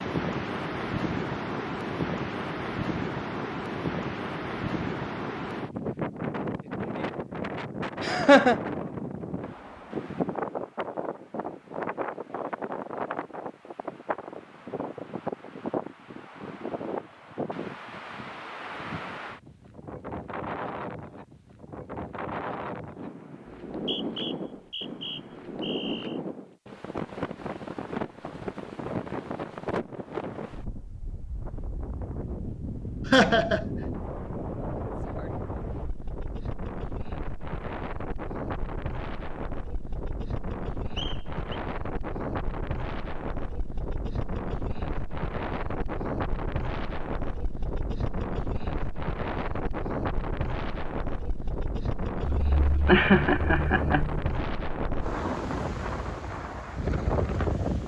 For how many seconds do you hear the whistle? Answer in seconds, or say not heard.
3 s.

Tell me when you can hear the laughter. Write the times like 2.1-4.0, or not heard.
8.0-8.6, 33.0-33.6, 52.4-54.3.